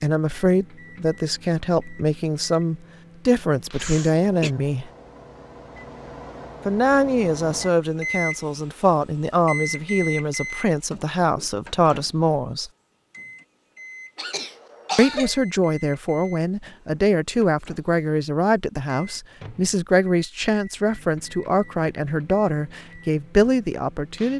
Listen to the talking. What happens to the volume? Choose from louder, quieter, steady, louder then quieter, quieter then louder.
steady.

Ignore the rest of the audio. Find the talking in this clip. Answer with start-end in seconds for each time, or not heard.
0.0-4.9, 6.7-12.7, 14.9-24.3.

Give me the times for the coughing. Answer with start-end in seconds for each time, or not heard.
3.8-4.5, 14.2-15.4.